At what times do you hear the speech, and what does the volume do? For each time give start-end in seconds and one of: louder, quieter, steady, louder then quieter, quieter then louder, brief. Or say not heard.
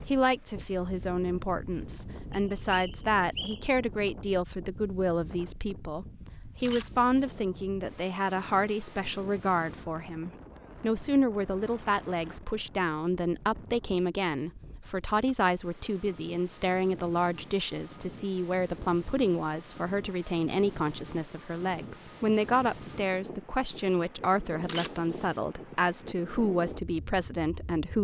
0.1-27.9 steady.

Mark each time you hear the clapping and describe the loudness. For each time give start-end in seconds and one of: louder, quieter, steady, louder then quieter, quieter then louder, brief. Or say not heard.
not heard.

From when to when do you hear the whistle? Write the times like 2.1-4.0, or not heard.
2.3-3.6.